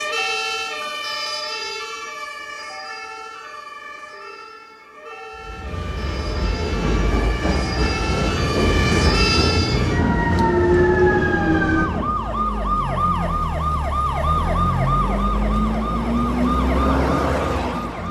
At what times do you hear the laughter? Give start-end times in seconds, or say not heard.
not heard.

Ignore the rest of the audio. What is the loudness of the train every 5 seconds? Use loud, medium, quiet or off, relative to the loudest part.
off, loud, loud, off.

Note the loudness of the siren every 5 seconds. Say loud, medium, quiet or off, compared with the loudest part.
medium, medium, loud, loud.